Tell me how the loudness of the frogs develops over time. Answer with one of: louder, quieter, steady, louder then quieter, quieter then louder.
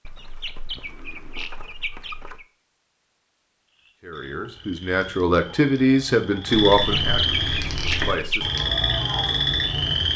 louder.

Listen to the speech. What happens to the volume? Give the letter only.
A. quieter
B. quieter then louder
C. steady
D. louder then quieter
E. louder
D.